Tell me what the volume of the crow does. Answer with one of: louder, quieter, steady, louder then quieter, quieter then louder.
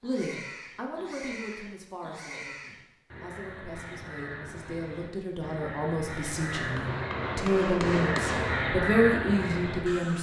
louder.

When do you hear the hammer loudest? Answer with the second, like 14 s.
8 s.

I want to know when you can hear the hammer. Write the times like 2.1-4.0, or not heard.
6.5-8.7.